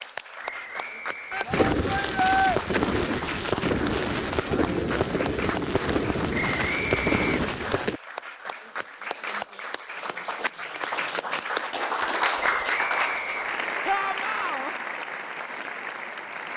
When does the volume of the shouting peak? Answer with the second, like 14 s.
2 s.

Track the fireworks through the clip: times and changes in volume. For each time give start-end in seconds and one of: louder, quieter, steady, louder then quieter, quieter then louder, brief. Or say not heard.
1.5-8.0 steady.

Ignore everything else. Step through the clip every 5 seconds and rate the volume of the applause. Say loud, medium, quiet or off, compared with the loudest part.
medium, medium, loud, medium.